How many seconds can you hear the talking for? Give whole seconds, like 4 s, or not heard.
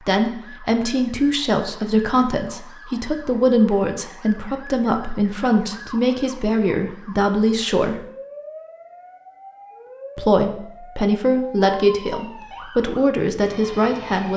12 s.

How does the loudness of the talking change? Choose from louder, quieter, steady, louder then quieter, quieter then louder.
steady.